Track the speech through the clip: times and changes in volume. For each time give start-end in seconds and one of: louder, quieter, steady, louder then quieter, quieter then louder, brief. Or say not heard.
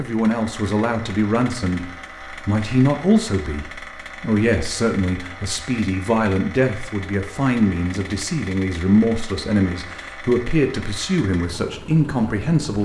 0.0-1.9 brief
2.5-12.7 steady.